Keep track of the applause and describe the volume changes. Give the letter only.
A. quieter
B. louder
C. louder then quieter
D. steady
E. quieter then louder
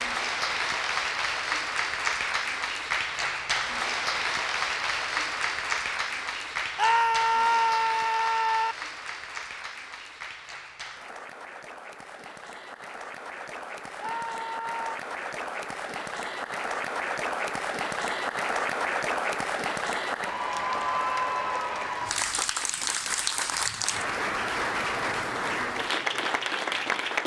E.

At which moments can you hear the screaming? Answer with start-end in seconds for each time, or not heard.
6.8-8.8, 14.0-14.9.